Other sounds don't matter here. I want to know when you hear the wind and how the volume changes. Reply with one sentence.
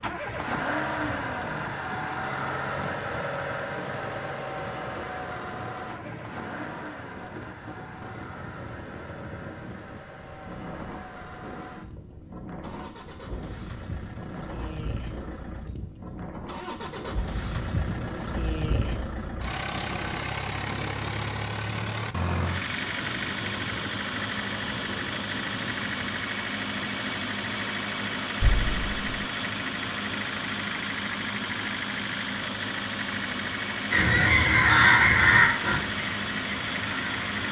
You can hear the wind from 0.0 to 26.1 s, at a steady volume.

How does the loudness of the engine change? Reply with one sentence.
The loudness of the engine goes down, then up.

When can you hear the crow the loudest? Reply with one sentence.
The loudest moment of the crow is at 35 seconds.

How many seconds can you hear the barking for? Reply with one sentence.
You can't hear the barking here.